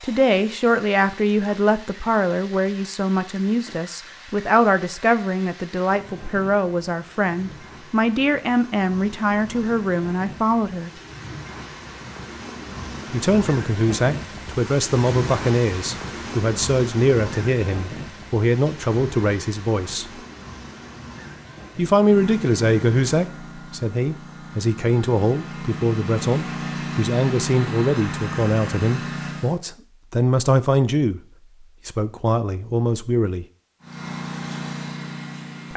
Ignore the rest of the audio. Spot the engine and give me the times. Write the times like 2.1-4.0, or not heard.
21.9-29.6, 33.8-35.7.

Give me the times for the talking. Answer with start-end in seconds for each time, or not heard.
0.0-10.9, 13.1-20.1, 21.8-31.2, 31.9-33.5.